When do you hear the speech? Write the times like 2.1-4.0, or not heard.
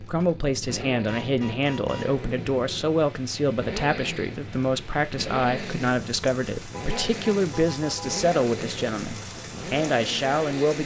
0.0-10.8.